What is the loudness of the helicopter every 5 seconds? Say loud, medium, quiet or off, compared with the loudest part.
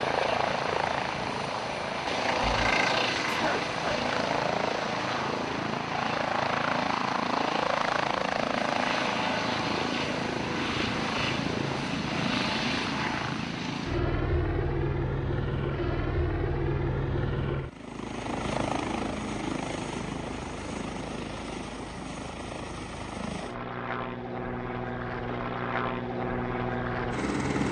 loud, loud, loud, loud, medium, loud.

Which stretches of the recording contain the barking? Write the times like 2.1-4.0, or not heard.
2.5-4.0.